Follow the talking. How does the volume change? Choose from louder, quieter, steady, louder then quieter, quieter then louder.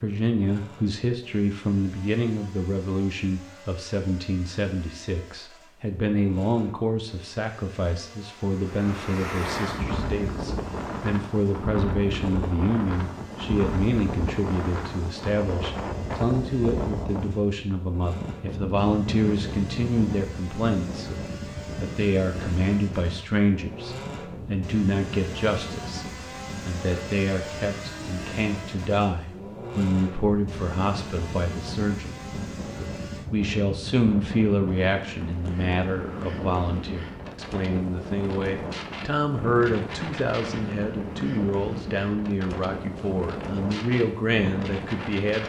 steady.